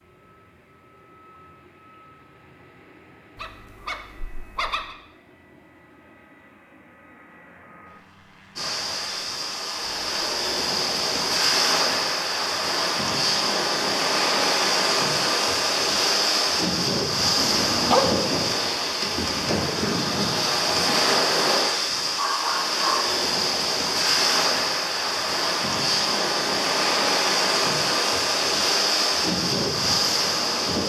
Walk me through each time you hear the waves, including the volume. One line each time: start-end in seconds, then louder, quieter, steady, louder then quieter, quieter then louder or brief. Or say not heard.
8.6-30.8 steady.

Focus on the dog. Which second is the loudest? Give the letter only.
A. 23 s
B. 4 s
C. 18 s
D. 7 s
C.